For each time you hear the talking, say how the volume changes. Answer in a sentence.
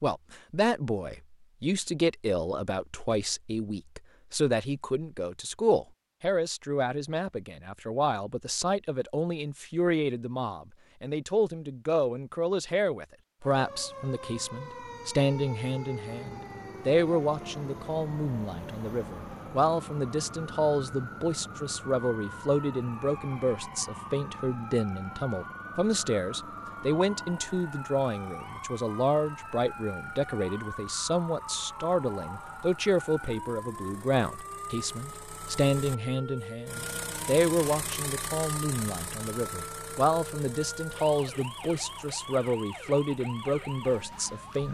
The talking can be heard from 0.0 to 44.6 s, at a steady volume.